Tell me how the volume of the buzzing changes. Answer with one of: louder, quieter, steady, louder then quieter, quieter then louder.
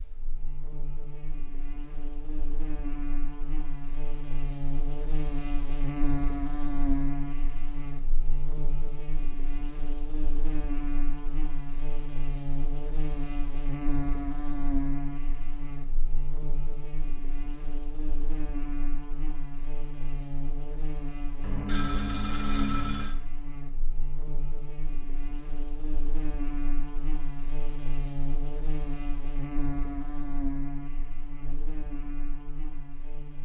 steady.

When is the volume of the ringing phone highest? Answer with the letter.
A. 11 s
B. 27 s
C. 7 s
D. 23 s
D.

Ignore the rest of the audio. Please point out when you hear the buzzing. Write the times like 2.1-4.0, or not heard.
0.0-33.3.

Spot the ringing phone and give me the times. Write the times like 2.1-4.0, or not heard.
21.4-23.1.